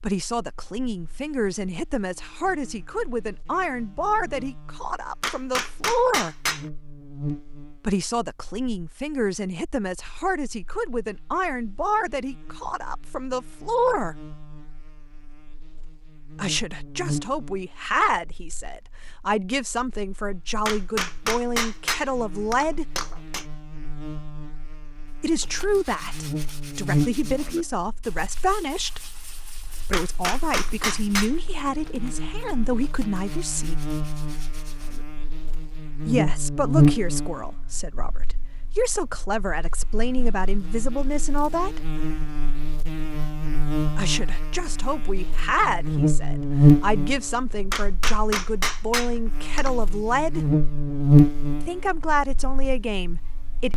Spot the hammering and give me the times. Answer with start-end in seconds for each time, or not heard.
5.2-6.7, 20.6-23.4, 29.9-31.4, 47.7-49.7.